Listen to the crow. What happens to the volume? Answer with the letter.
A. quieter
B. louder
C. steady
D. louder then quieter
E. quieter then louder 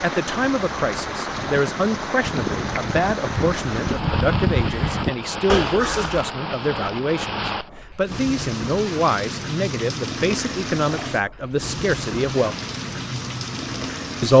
B.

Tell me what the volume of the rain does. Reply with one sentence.
The volume of the rain stays about the same.